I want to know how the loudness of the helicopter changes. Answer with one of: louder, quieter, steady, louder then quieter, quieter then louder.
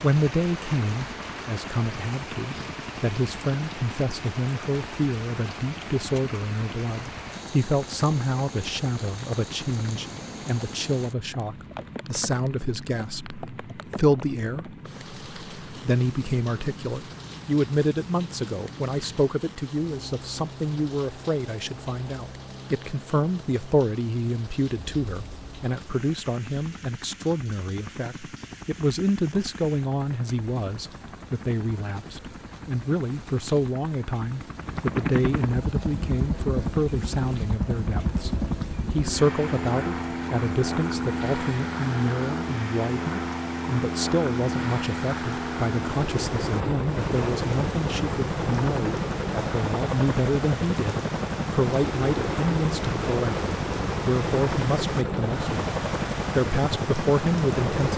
louder.